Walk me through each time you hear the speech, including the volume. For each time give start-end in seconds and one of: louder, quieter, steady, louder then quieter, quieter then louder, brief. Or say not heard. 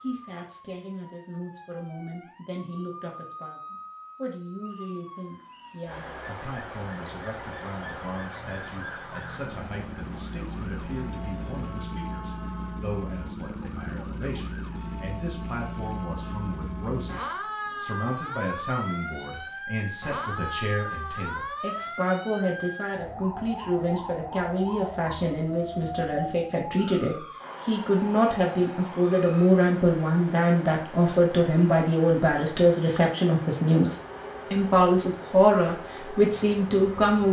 0.0-37.2 louder.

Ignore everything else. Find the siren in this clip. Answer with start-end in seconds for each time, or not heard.
0.0-29.5, 33.9-37.2.